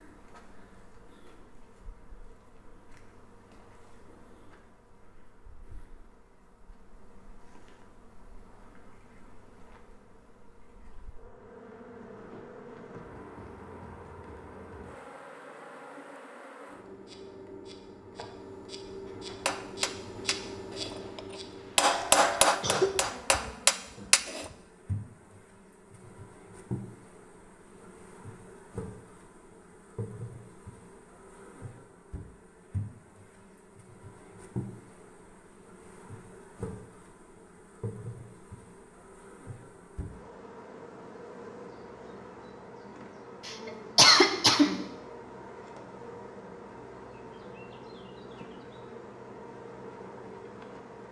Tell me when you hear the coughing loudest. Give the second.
44 s.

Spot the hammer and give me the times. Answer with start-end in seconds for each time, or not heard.
19.3-24.5.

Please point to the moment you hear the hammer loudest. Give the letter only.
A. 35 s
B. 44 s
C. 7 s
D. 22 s
D.